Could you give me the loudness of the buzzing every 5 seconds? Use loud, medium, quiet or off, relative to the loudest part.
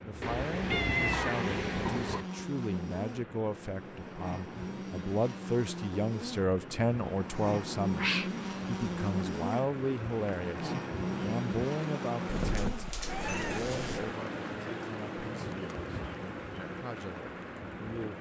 loud, loud, loud, off.